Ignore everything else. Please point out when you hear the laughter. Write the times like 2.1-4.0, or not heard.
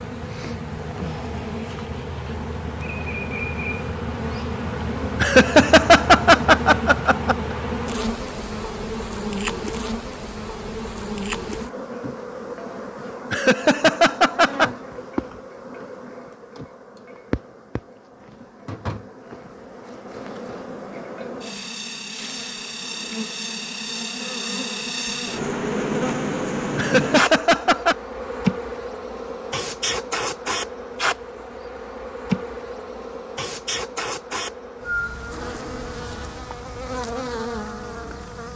5.2-7.3, 13.3-14.7, 26.8-27.9.